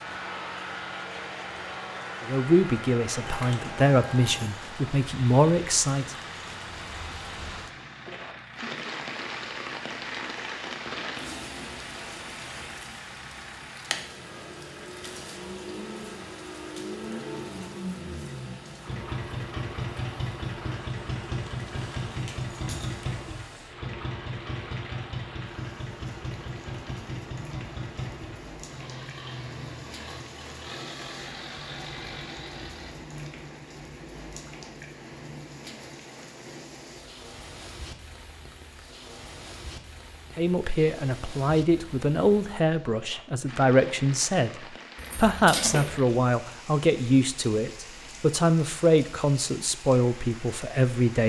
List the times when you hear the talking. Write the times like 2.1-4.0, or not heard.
2.2-6.2, 40.4-51.2.